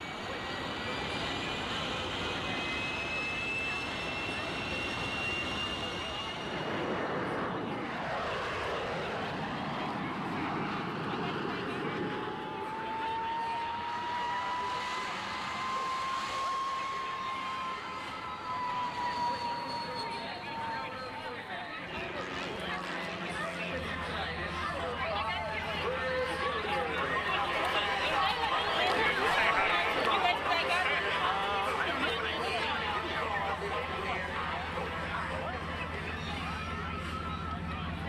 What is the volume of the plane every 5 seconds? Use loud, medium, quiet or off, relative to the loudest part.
loud, loud, loud, loud, medium, quiet, quiet, medium.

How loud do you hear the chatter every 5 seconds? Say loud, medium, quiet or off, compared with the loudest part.
quiet, quiet, quiet, quiet, medium, loud, loud, medium.